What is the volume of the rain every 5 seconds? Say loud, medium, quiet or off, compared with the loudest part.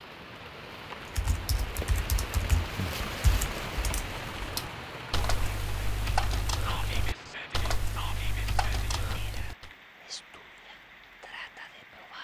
loud, medium, quiet.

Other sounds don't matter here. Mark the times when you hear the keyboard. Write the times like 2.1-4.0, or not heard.
1.1-9.7.